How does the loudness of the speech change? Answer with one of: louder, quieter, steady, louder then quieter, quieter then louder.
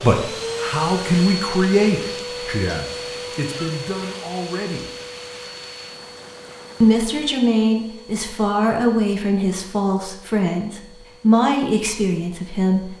quieter then louder.